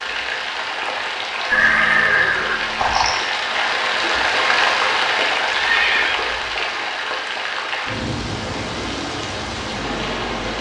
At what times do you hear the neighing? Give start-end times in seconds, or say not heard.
1.5-3.1, 5.5-6.6.